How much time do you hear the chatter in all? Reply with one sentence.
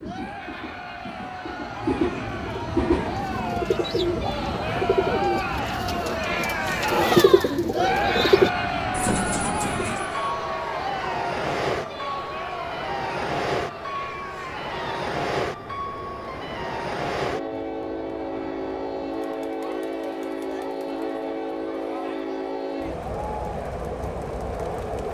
You can hear the chatter for 25 seconds altogether.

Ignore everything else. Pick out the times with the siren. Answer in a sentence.
The siren can't be heard in this clip.